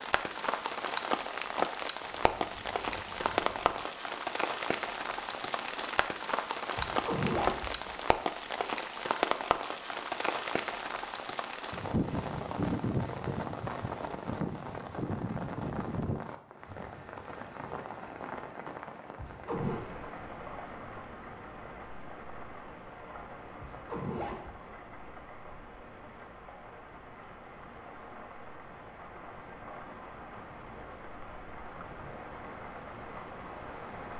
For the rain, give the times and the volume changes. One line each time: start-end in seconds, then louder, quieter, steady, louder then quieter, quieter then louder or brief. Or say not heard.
0.0-34.1 quieter.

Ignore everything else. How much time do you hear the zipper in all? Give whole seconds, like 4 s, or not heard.
3 s.